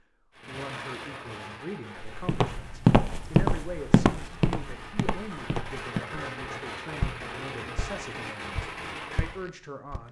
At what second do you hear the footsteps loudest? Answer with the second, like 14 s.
3 s.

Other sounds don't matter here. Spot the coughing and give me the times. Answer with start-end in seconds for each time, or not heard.
not heard.